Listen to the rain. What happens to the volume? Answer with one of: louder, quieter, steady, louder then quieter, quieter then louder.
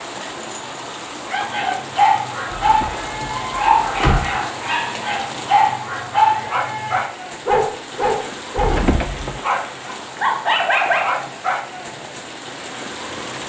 steady.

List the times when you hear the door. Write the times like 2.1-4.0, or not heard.
2.5-4.2, 8.6-9.3.